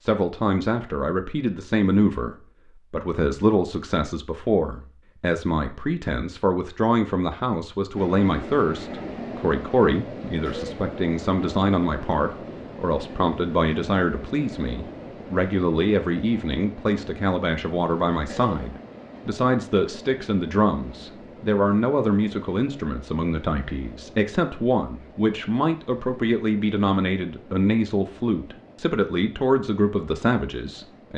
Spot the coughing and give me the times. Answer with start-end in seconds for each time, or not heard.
10.4-10.8, 18.2-18.7.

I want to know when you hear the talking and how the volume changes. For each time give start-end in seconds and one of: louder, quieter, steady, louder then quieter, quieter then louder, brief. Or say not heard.
0.0-31.1 steady.